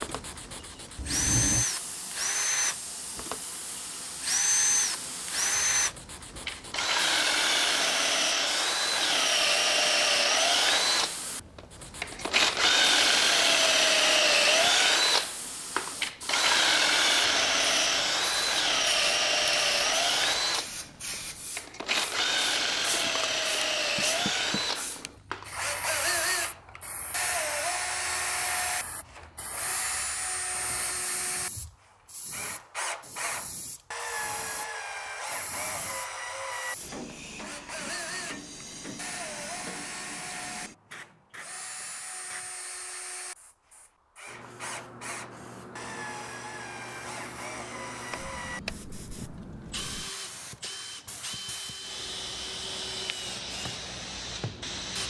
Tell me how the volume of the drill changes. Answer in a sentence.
The volume of the drill goes down.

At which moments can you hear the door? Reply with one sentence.
You can hear the door from 0.9 to 1.7 s, from 23.9 to 24.6 s and from 48.1 to 48.8 s.